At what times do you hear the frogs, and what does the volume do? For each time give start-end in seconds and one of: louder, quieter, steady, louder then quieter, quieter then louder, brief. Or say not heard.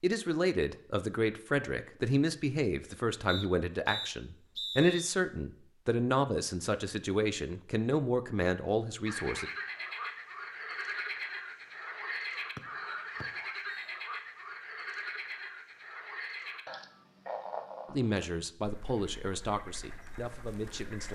9.1-21.1 quieter.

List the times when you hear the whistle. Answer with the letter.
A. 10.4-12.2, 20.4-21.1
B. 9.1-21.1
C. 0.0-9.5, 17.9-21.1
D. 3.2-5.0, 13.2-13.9
D.